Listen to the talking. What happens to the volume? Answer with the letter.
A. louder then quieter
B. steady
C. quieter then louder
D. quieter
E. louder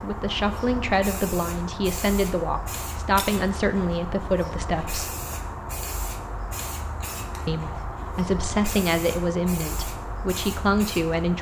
B.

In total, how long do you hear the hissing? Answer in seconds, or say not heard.
11 s.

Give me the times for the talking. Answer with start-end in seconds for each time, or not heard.
0.0-5.2, 7.5-11.3.